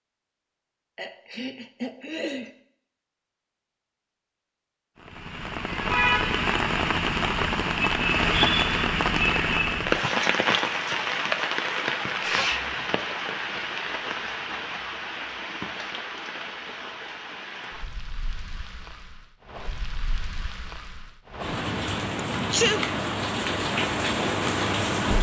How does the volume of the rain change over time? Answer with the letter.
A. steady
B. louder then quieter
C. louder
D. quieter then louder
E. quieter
D.